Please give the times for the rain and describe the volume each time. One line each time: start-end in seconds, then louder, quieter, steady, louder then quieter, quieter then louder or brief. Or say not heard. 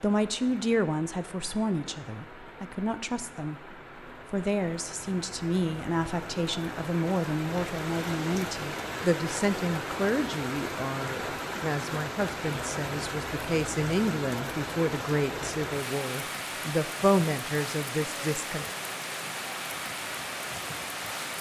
0.0-21.3 louder.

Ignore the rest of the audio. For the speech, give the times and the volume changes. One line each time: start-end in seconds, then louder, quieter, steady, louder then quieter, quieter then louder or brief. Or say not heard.
0.0-18.6 steady.